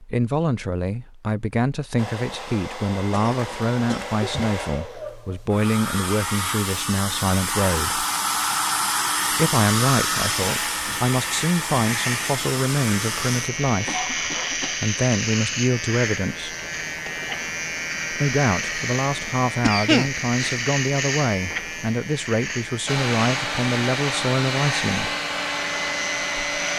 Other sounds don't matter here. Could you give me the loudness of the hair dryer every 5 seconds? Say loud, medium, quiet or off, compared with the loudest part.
medium, loud, loud, off, loud, loud.